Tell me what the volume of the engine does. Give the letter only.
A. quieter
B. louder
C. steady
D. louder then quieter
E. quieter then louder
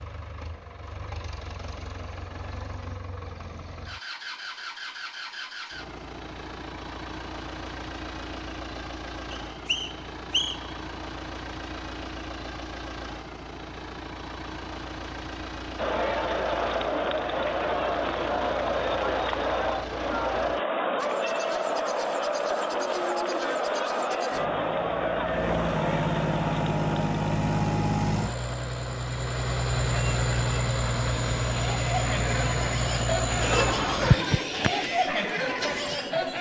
B.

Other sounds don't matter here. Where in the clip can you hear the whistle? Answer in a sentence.
The whistle can be heard from 9.3 to 10.8 s.